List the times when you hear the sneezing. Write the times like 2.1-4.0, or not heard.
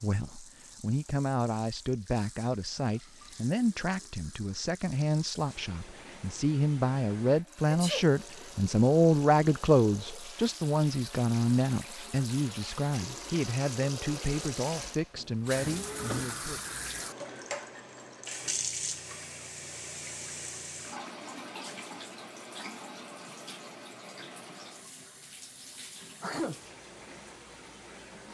7.7-8.1, 26.2-26.6.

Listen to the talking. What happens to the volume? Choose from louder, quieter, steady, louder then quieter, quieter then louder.
louder then quieter.